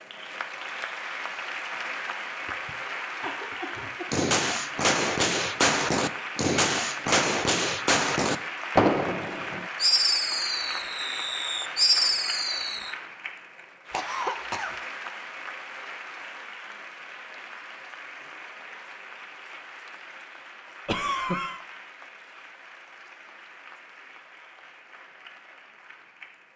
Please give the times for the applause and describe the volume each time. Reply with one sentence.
The applause can be heard from 0.0 to 26.5 s, getting quieter.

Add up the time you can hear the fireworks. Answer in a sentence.
You can hear the fireworks for 9 seconds altogether.